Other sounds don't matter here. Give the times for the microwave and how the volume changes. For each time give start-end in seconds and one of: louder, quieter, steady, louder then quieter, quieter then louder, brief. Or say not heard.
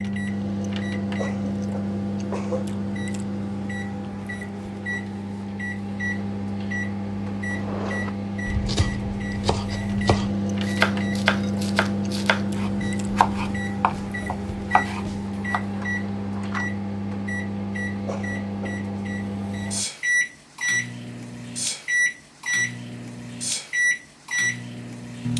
0.0-25.3 steady.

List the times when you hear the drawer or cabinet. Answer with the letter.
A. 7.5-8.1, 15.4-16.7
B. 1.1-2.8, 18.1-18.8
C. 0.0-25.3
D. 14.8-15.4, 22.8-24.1
A.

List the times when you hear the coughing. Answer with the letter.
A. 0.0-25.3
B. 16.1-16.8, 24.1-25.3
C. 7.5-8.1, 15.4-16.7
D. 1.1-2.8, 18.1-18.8
D.